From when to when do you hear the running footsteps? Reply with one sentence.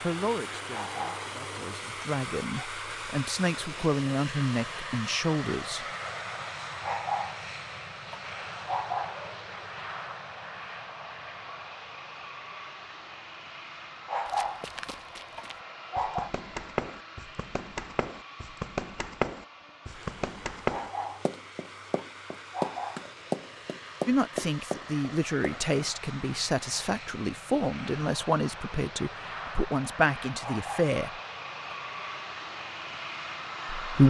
You can hear the running footsteps from 14.2 to 25.8 s.